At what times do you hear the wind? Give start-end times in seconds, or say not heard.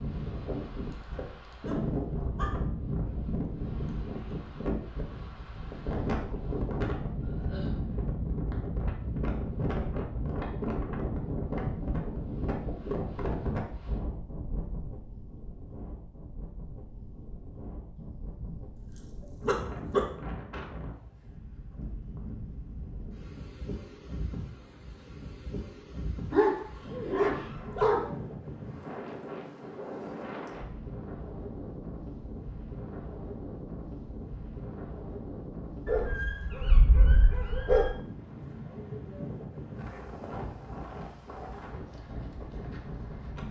0.0-43.4.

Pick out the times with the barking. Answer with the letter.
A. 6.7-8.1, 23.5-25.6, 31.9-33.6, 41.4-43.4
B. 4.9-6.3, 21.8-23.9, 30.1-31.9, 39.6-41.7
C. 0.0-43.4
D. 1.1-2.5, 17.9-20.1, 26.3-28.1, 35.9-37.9
D.